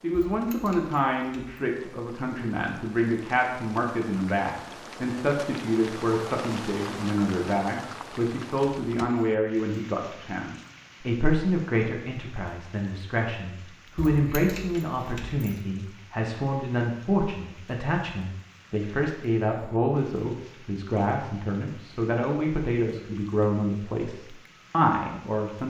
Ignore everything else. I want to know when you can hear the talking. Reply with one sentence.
You can hear the talking from 0.0 to 25.6 s.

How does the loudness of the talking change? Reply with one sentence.
The volume of the talking stays about the same.